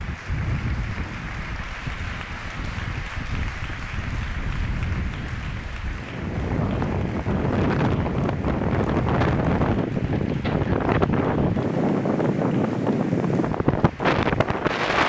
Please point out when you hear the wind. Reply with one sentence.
The wind can be heard from 0.0 to 15.0 s.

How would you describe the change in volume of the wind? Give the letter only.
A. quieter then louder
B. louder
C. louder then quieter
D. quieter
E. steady
B.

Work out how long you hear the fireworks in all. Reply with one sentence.
The fireworks can't be heard in this clip.